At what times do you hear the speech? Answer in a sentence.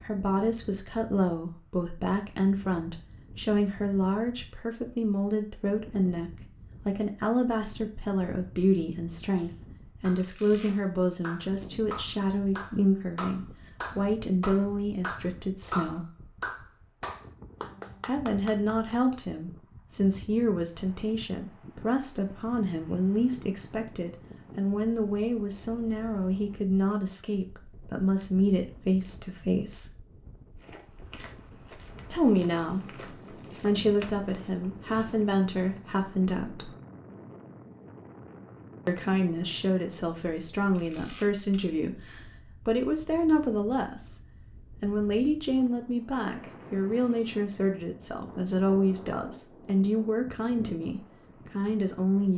The speech can be heard from 0.0 to 16.1 s, from 18.1 to 29.9 s, from 32.1 to 36.7 s and from 38.9 to 52.3 s.